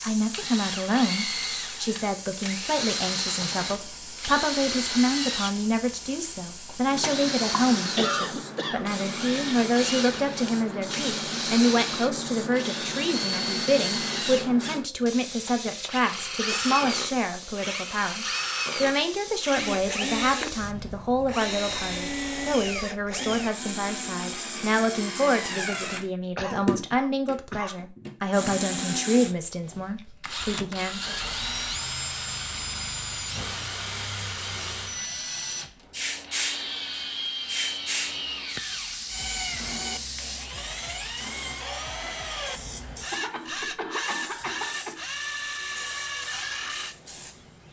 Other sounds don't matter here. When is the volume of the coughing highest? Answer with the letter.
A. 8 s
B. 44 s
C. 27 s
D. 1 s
A.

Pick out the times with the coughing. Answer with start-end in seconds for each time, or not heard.
8.0-8.8, 26.4-27.8, 42.6-45.0.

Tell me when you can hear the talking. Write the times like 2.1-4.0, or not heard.
0.0-31.1.